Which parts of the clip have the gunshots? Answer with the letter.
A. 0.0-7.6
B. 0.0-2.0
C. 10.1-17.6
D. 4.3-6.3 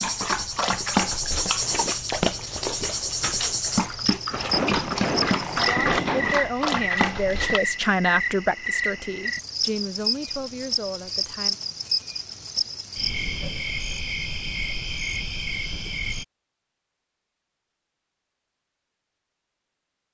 D.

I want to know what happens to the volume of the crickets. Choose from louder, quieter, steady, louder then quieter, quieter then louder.
steady.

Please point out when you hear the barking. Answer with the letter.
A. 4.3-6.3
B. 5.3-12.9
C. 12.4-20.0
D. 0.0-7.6
D.